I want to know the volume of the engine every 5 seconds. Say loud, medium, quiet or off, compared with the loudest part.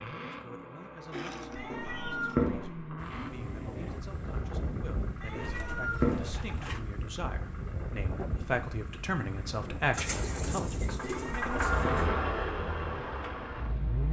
medium, quiet, loud.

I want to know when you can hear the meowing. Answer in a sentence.
The meowing can be heard from 1.6 to 2.9 s, from 5.2 to 6.5 s and from 11.0 to 11.9 s.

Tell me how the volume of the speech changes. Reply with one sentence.
The loudness of the speech goes up.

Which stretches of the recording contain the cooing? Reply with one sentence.
The cooing can be heard from 1.1 to 2.5 s, from 5.4 to 6.8 s and from 9.9 to 12.1 s.